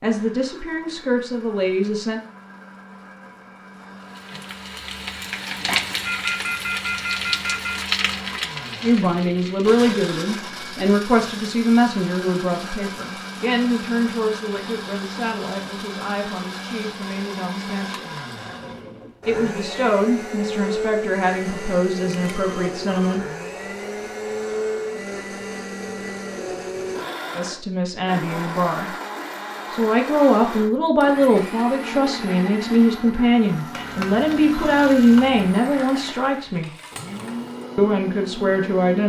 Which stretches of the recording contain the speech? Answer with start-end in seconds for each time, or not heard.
0.0-2.2, 8.8-18.1, 19.2-23.2, 27.4-28.9, 29.7-36.7, 37.8-39.0.